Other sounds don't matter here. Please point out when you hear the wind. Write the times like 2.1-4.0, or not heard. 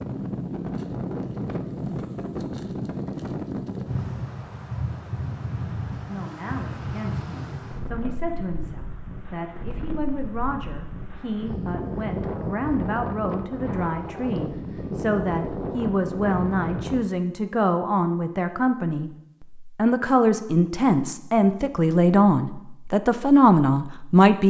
0.0-17.1.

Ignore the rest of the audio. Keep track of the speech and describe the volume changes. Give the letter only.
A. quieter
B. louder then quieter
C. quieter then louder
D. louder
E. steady
D.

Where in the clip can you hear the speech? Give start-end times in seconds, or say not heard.
6.0-24.4.